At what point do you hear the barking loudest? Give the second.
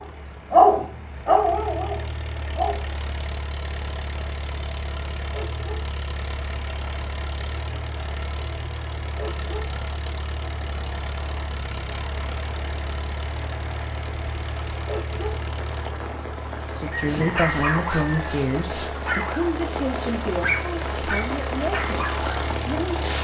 1 s.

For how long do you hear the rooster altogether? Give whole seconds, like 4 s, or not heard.
2 s.